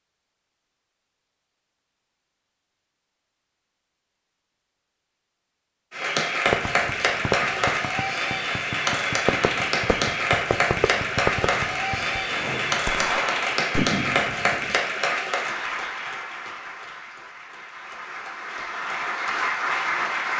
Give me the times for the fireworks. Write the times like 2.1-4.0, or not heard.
6.5-14.8.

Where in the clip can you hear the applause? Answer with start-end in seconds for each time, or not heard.
5.9-20.3.